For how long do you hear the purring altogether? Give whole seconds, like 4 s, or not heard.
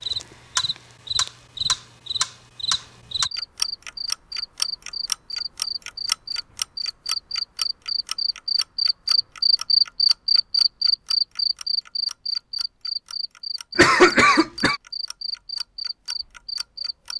not heard.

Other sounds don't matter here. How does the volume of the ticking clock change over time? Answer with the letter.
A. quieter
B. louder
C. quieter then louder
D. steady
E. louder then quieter
A.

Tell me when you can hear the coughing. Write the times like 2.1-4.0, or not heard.
13.8-14.8.